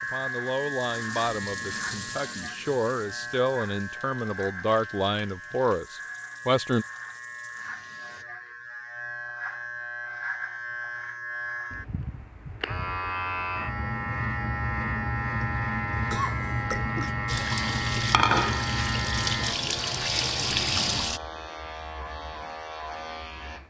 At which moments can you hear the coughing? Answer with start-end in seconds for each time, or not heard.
15.9-17.1.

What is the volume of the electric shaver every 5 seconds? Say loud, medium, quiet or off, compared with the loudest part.
medium, medium, loud, loud, medium.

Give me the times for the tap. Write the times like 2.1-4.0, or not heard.
0.0-8.2, 17.2-21.2.